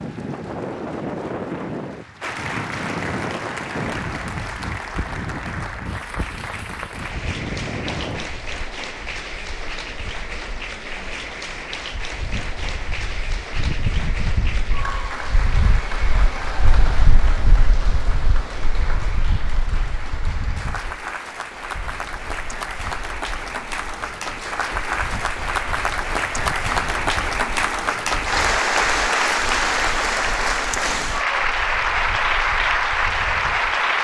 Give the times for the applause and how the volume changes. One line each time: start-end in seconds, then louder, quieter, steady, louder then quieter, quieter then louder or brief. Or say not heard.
0.0-33.9 louder.